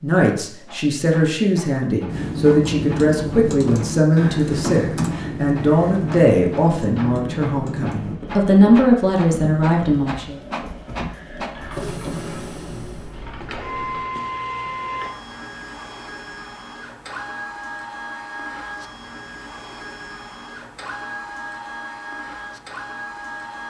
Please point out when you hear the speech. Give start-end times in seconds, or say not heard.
0.0-10.3.